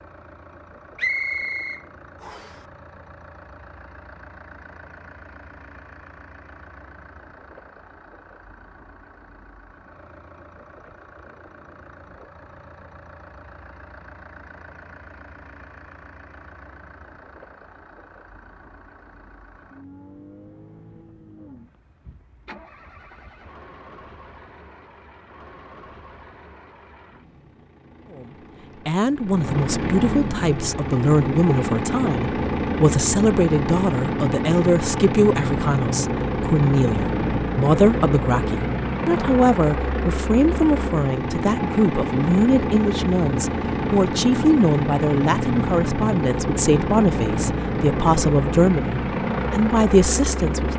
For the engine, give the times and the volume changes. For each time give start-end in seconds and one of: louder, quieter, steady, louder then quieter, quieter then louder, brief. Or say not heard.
0.0-50.7 louder.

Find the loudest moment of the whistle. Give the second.
1 s.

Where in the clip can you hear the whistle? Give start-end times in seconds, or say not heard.
0.9-2.6.